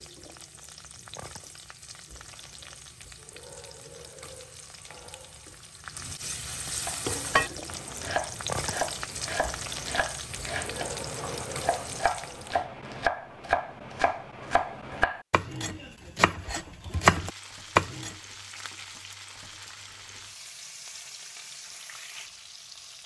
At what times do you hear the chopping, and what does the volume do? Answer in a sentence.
You can hear the chopping from 6.8 to 18.1 s, getting louder.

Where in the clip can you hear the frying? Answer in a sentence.
The frying can be heard from 0.0 to 12.6 s and from 16.8 to 23.0 s.